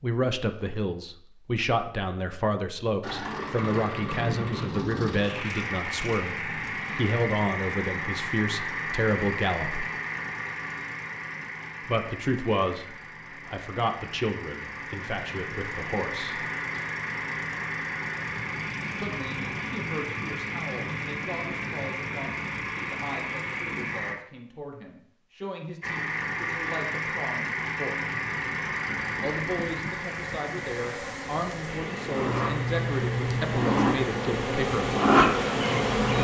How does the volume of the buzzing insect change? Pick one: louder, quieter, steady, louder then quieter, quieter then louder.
louder.